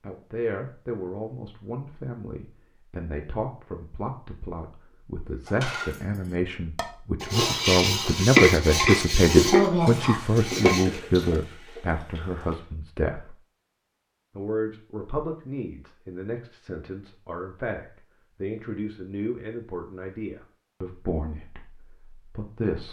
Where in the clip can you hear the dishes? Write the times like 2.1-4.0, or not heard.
5.5-11.2.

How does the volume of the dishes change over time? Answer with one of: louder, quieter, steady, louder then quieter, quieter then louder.
louder then quieter.